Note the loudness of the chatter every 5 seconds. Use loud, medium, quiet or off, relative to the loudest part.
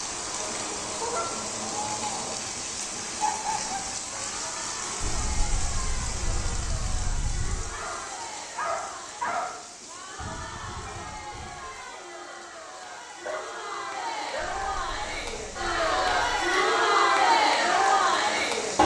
quiet, quiet, quiet, loud.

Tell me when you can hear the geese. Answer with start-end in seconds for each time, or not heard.
0.3-2.4, 5.0-7.7, 10.2-11.8, 14.3-16.6.